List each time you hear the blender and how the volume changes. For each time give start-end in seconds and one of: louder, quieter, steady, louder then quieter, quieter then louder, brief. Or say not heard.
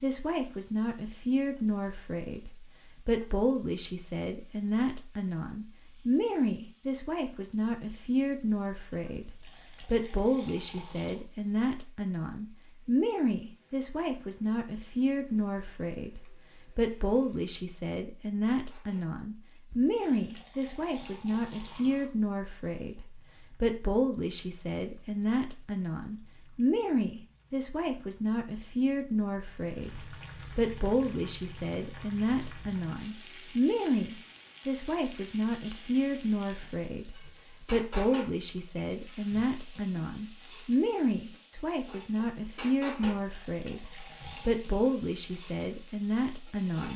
not heard.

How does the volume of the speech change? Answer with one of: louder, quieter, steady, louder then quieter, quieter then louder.
steady.